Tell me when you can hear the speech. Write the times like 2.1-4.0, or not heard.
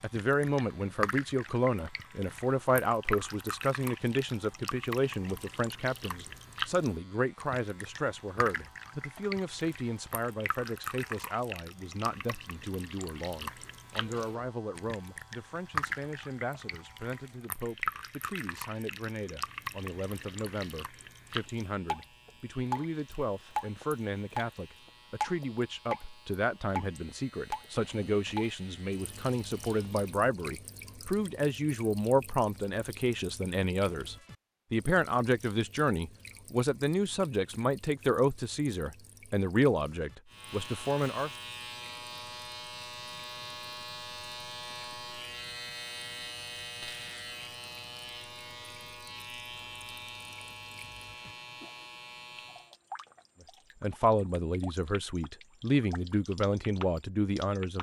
0.0-41.3, 53.8-57.7.